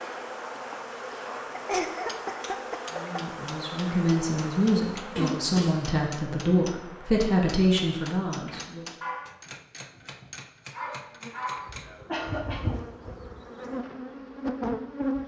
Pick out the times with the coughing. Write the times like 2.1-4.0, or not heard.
1.6-3.2, 5.2-6.0, 11.8-12.8.